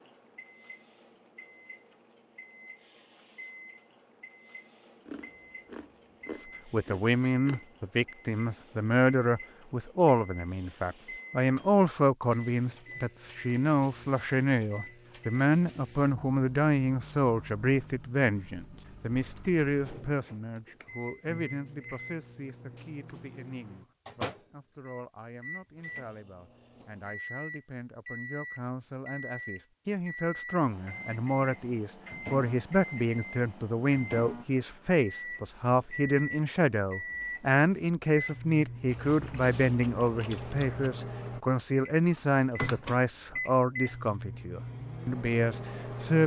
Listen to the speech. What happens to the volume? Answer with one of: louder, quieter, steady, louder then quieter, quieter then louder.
quieter then louder.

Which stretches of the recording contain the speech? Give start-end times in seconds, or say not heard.
6.7-46.2.